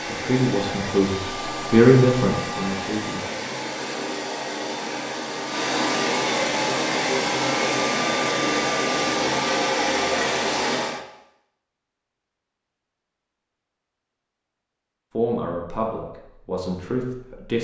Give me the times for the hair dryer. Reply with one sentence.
The hair dryer can be heard from 0.0 to 11.1 s.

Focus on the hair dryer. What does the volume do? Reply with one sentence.
The volume of the hair dryer goes up.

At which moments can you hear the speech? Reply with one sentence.
You can hear the speech from 0.1 to 3.2 s and from 15.2 to 17.6 s.